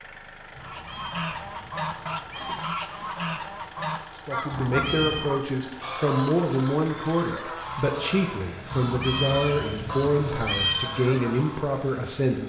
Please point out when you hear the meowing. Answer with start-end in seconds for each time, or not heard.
0.6-2.6, 4.5-5.2, 8.7-10.8.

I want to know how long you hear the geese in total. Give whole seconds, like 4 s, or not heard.
11 s.